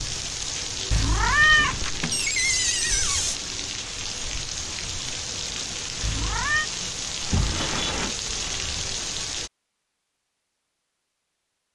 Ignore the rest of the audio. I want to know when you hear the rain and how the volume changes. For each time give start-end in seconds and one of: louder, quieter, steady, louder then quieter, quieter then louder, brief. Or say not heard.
0.0-9.5 steady.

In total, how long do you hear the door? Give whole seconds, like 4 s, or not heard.
2 s.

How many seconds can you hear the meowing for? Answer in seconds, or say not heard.
2 s.